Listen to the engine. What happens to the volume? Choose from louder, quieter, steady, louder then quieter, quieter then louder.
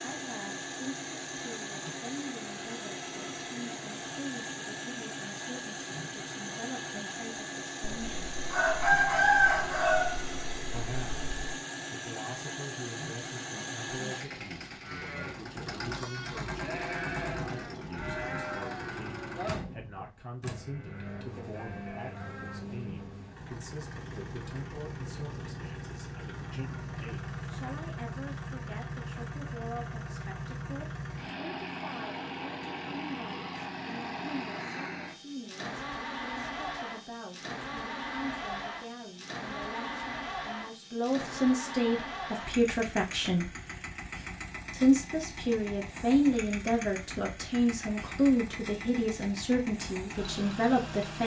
steady.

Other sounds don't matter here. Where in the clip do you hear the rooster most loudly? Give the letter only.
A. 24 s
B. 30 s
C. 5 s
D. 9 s
D.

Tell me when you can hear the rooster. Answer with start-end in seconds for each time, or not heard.
7.8-11.6.